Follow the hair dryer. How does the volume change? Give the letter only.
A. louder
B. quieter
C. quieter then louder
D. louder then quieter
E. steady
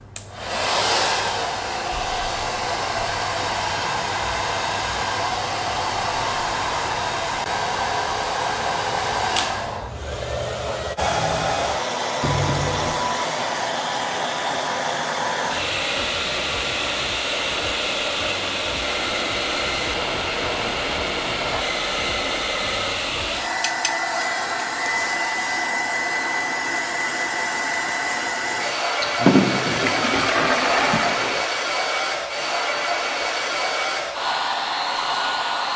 E.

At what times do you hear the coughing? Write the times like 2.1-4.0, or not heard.
29.0-29.9.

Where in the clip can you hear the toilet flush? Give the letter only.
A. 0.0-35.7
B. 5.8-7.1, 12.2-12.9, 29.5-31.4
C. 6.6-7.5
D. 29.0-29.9
B.